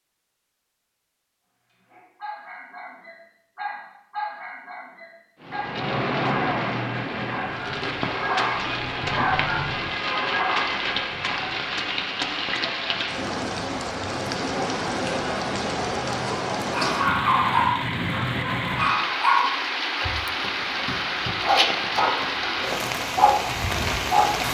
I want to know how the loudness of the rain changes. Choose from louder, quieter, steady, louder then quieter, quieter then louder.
steady.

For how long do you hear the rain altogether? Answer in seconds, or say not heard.
19 s.